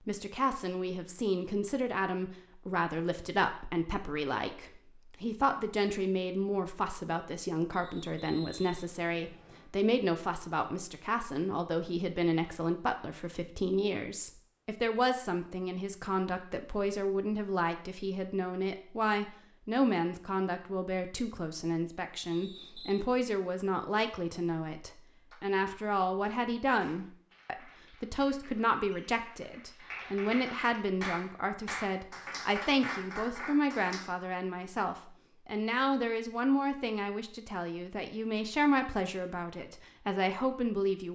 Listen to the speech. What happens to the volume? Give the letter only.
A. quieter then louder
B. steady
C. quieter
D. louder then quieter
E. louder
B.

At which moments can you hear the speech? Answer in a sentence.
You can hear the speech from 0.1 to 41.1 s.